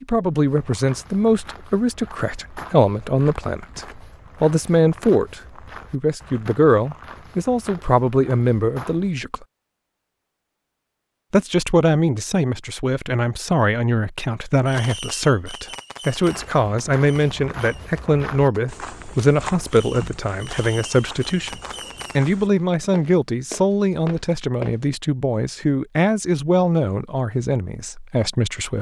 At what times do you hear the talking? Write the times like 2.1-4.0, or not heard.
0.0-9.4, 11.3-28.7.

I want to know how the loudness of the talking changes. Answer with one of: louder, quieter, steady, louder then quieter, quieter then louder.
steady.